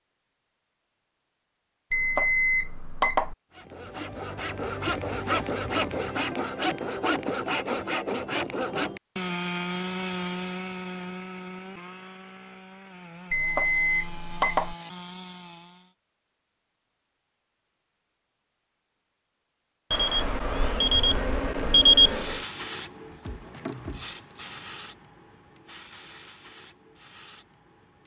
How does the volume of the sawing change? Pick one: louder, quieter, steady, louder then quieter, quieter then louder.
quieter.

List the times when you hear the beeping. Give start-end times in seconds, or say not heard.
1.9-3.4, 13.3-14.8, 19.9-22.4.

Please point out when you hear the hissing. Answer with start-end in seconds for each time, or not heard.
22.0-28.0.